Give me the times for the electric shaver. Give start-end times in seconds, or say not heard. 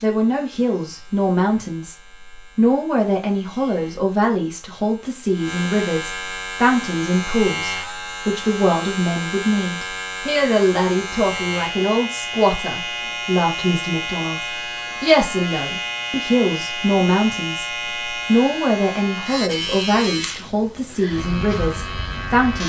0.0-22.6.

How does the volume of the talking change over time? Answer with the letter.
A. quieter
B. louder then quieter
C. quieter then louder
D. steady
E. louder
D.